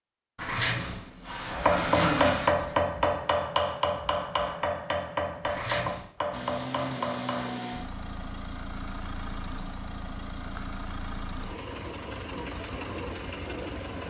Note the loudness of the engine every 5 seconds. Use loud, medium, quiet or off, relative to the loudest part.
off, loud, loud.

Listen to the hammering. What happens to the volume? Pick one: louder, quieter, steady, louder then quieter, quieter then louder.
quieter.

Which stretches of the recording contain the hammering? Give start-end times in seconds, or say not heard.
1.4-7.6.